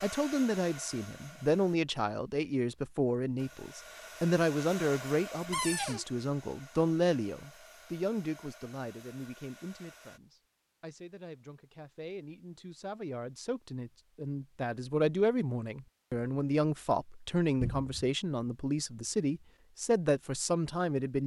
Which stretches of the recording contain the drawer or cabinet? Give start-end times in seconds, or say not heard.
5.5-6.0, 17.6-18.1.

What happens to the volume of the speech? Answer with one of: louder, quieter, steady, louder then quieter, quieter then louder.
quieter then louder.